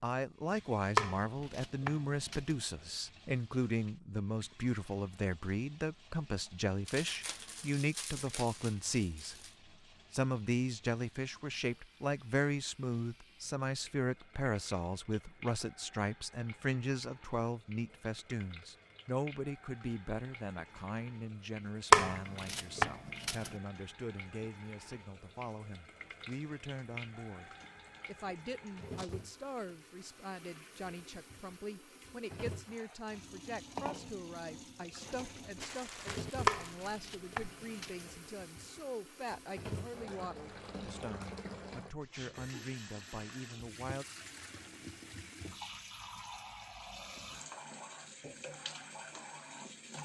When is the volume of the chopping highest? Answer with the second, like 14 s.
22 s.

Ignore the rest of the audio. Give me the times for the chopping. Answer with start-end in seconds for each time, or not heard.
0.9-2.5, 21.9-23.5, 36.5-38.0.